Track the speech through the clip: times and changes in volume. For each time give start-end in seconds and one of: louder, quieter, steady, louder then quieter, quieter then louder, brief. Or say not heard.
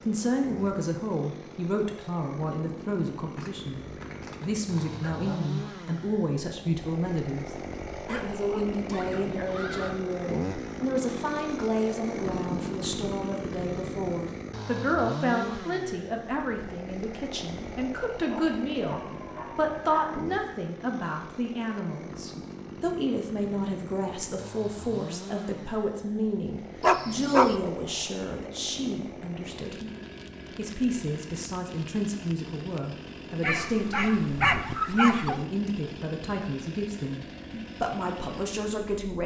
0.0-39.2 steady.